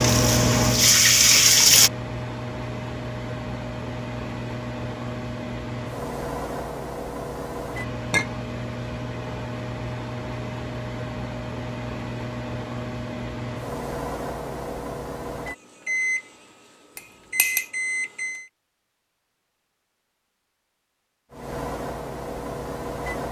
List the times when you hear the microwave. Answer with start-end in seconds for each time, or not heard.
0.0-18.5, 21.3-23.2.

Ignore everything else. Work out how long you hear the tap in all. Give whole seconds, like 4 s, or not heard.
2 s.